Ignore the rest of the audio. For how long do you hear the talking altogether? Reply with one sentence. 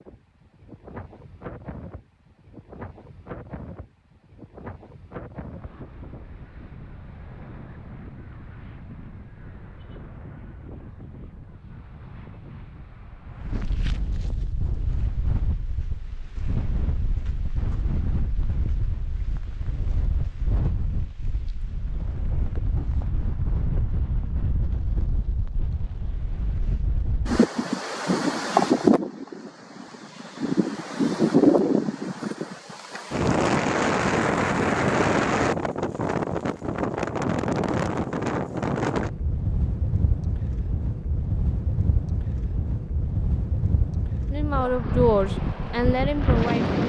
You can hear the talking for 2 seconds altogether.